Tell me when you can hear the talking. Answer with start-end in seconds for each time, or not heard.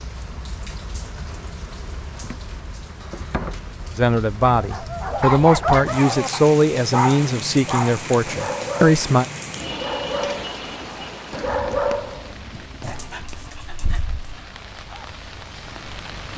4.0-9.2.